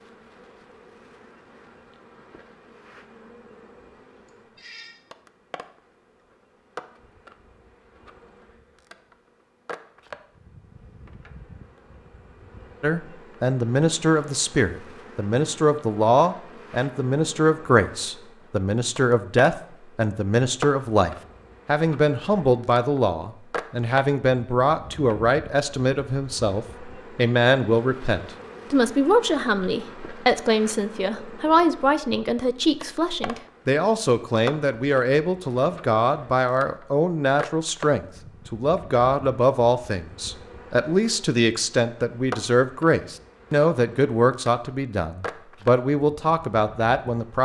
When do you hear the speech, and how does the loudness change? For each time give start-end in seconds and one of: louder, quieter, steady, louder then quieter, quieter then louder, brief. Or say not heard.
12.8-47.4 steady.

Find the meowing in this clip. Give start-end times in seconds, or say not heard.
4.2-5.0.